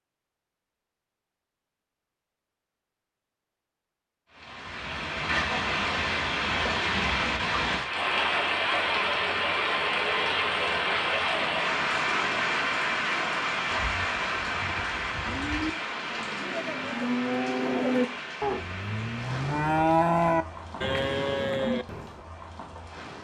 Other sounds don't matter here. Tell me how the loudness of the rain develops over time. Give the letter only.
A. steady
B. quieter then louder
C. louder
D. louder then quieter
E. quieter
E.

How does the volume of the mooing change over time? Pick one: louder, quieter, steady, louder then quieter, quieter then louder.
louder.